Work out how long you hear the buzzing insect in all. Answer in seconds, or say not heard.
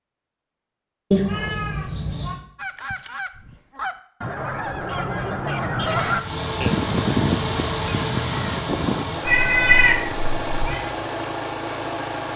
not heard.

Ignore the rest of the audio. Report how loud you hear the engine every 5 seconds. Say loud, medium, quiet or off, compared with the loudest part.
off, loud, loud.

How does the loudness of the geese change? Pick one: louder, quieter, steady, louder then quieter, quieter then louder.
louder then quieter.